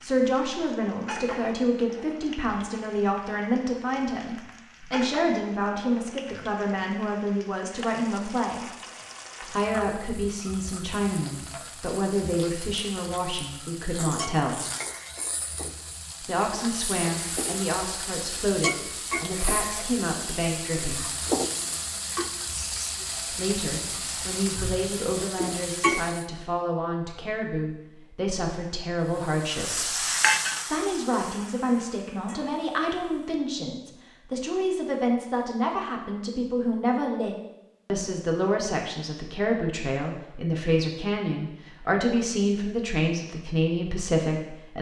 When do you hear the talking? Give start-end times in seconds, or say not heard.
0.0-8.7, 9.4-14.7, 16.2-21.1, 23.3-30.1, 30.7-44.7.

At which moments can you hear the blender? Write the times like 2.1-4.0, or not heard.
not heard.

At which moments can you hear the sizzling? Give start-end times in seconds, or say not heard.
0.0-26.2, 29.0-33.4.